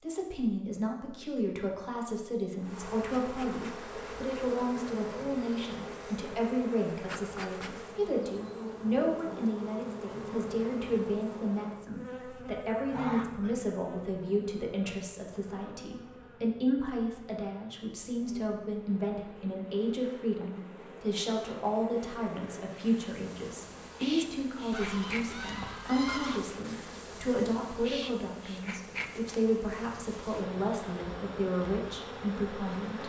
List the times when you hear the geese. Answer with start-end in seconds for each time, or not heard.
12.9-13.7, 24.7-26.4.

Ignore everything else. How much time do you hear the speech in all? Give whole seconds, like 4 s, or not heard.
33 s.